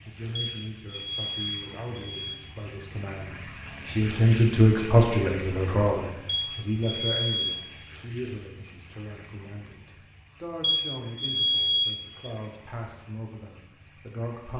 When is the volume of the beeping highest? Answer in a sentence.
The volume of the beeping peaks at 12 seconds.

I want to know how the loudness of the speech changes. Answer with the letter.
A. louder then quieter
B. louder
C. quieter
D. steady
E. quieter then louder
A.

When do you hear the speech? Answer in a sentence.
You can hear the speech from 0.1 to 14.5 s.